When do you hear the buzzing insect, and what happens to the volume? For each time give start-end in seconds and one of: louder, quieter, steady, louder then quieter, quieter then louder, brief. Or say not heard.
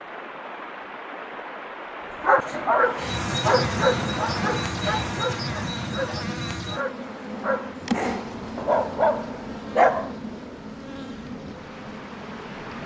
2.8-12.8 quieter.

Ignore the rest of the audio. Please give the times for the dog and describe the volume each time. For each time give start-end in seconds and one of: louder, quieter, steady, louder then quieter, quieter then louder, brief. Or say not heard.
2.2-10.1 quieter then louder.